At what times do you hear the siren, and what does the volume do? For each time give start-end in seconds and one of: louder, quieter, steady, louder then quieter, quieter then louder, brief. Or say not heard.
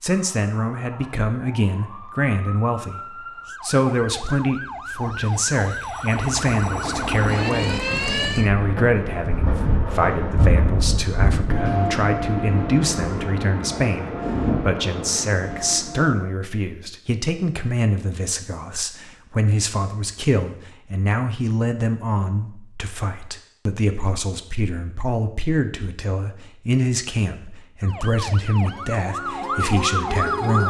0.1-8.5 louder
27.8-30.6 brief.